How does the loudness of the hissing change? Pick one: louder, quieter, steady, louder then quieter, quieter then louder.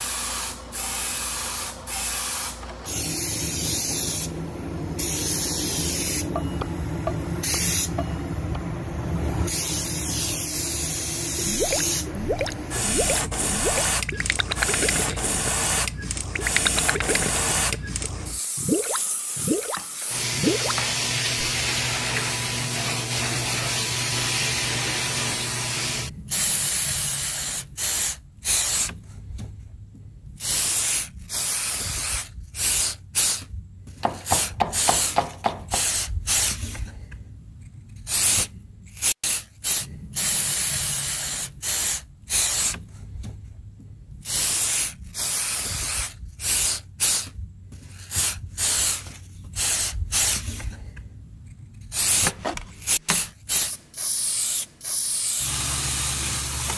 steady.